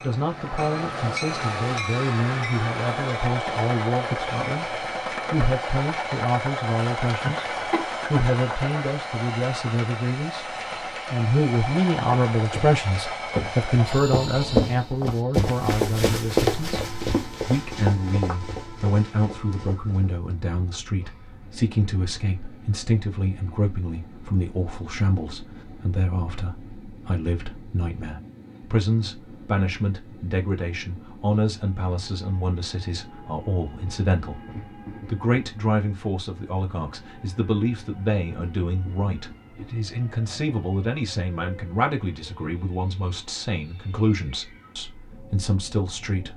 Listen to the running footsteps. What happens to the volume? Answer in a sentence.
The loudness of the running footsteps goes up, then down.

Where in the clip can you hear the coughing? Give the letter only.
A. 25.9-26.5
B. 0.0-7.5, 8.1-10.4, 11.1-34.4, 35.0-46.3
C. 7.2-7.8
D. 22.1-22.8
C.